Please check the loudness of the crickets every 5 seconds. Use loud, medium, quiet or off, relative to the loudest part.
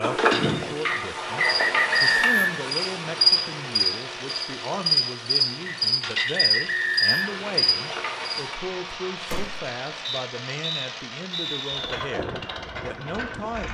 loud, loud, off.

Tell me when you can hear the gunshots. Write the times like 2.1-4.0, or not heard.
9.2-9.8.